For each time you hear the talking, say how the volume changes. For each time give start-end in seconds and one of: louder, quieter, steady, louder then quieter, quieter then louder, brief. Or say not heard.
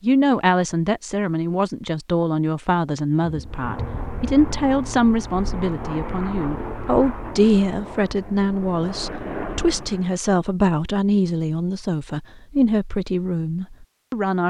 0.0-14.4 steady.